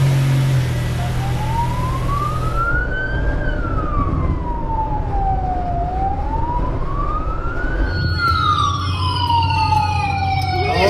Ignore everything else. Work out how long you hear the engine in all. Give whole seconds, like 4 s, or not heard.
3 s.